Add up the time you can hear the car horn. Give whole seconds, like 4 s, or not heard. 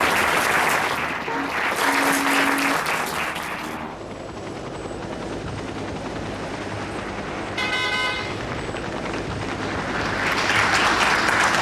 3 s.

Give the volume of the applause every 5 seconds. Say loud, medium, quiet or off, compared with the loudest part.
loud, quiet, loud.